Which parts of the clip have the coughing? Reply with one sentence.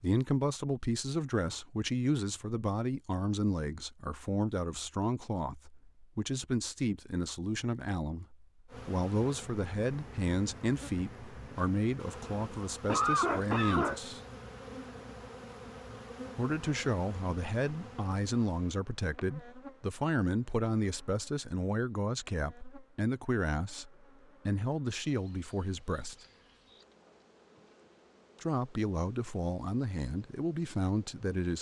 You can hear the coughing from 12.1 to 14.0 s.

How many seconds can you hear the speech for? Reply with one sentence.
The speech can be heard for 27 seconds in total.